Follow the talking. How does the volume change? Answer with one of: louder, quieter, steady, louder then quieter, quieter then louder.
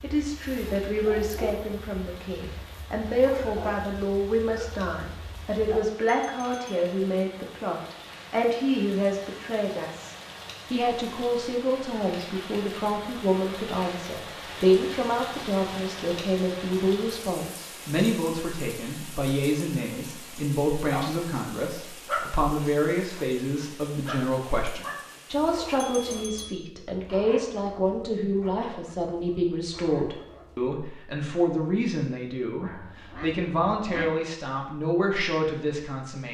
steady.